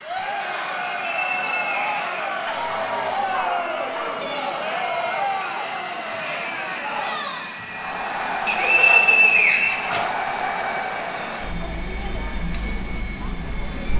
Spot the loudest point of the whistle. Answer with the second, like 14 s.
9 s.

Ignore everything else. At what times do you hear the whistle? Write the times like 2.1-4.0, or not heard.
0.8-2.2, 8.4-10.4.